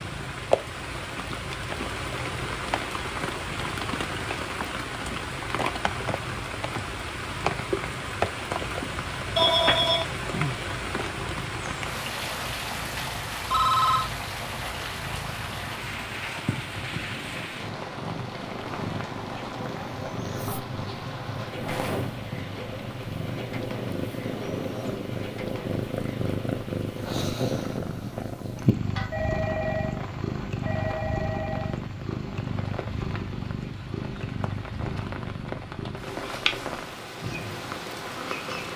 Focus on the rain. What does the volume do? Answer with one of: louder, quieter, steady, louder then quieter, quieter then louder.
quieter.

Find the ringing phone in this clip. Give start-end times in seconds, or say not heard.
9.3-10.1, 13.5-14.1, 29.1-31.8.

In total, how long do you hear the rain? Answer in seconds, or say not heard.
39 s.